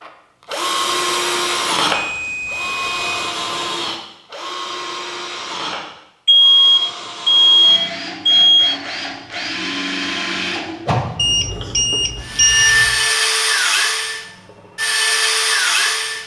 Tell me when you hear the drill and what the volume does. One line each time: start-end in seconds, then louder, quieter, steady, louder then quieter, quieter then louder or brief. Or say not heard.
0.0-16.2 quieter then louder.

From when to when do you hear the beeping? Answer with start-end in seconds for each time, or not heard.
1.9-3.1, 6.2-8.8, 11.2-13.1.